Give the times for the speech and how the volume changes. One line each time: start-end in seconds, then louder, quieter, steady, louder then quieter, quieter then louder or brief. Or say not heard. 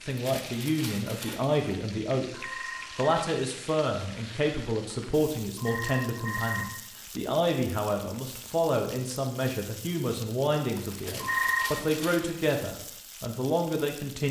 0.1-14.2 steady.